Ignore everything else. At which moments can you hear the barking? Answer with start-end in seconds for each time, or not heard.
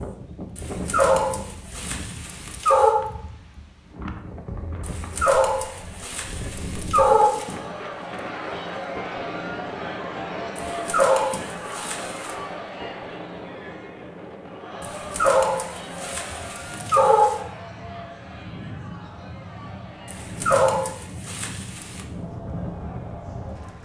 0.6-3.0, 4.8-7.5, 10.6-12.3, 14.8-17.4, 20.1-22.1.